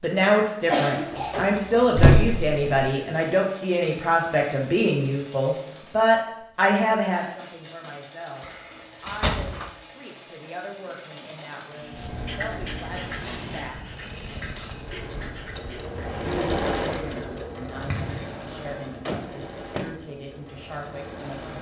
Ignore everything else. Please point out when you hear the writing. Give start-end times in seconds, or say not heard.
11.8-18.4.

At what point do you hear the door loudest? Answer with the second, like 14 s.
2 s.